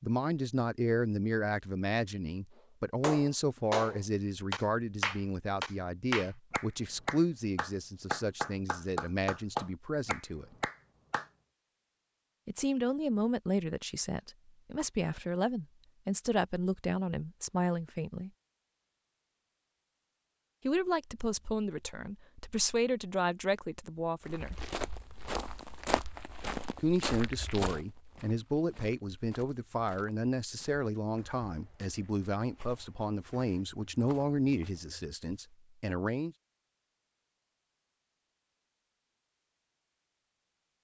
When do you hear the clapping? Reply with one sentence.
You can hear the clapping from 3.0 to 11.2 s.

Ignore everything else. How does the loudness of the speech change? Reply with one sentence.
The loudness of the speech stays about the same.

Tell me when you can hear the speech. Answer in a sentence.
You can hear the speech from 0.0 to 10.4 s, from 12.4 to 18.3 s, from 20.6 to 24.6 s and from 26.8 to 36.4 s.